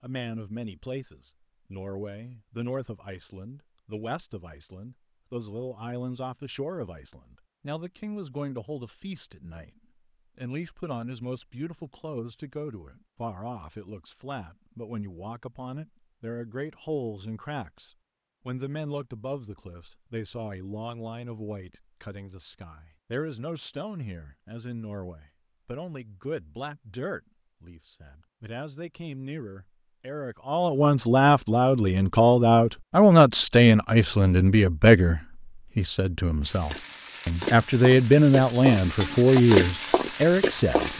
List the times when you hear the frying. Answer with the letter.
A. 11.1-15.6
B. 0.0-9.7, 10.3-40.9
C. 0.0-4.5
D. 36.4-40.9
D.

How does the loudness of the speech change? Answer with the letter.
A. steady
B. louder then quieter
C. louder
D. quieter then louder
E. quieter
C.